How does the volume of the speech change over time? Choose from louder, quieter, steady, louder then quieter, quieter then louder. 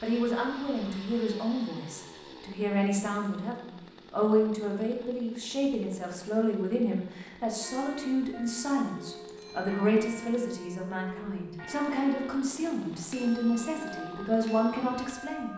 steady.